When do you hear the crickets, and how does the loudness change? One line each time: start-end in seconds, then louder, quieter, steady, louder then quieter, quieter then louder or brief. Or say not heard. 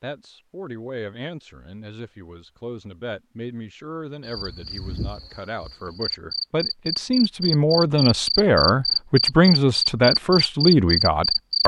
4.2-11.6 louder.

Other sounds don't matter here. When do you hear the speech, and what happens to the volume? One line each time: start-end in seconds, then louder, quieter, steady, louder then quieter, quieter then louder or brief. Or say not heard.
0.0-11.6 louder.